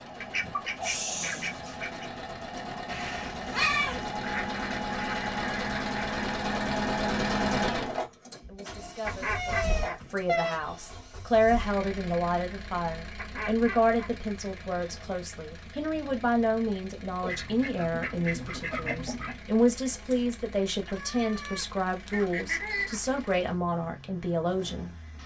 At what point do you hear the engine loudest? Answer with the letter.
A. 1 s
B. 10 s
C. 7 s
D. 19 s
C.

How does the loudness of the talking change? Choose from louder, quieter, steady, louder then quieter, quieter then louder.
steady.